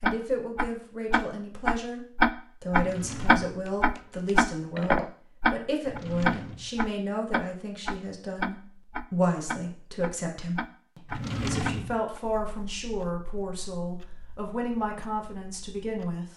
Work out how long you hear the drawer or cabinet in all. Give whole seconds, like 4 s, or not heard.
3 s.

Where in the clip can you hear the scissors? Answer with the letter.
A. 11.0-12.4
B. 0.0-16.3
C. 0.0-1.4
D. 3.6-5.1
D.